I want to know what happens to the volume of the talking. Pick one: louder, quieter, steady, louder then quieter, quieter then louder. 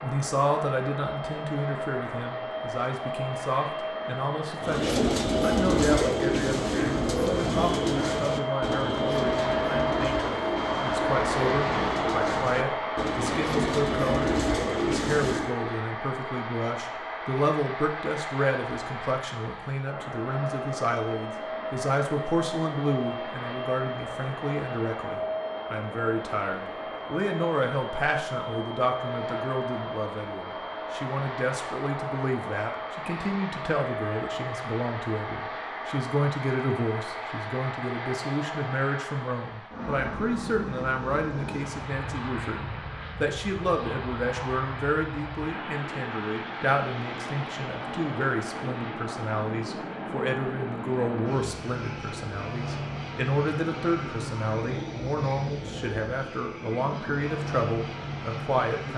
steady.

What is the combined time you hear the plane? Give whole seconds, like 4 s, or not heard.
59 s.